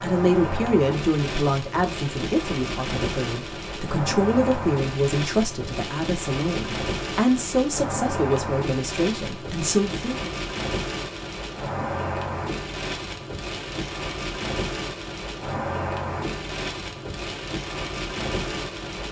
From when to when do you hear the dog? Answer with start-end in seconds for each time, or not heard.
not heard.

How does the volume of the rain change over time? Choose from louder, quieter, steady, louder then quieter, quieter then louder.
steady.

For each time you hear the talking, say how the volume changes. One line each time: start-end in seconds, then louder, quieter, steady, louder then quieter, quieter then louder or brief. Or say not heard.
0.0-10.3 steady.